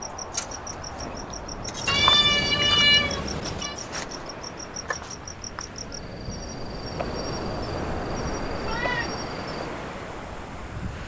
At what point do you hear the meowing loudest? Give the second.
3 s.